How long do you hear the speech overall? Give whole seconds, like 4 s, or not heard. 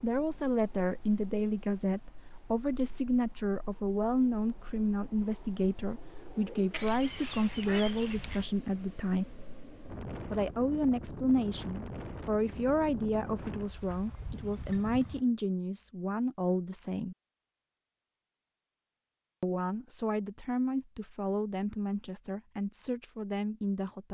21 s.